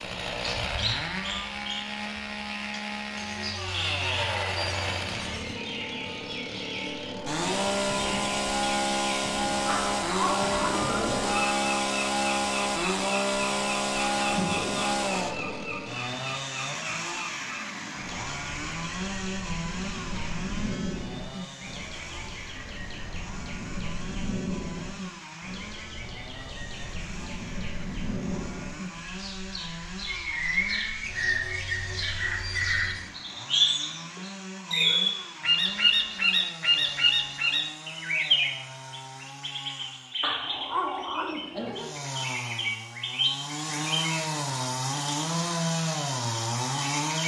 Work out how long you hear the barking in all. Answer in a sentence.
The barking can be heard for 3 seconds in total.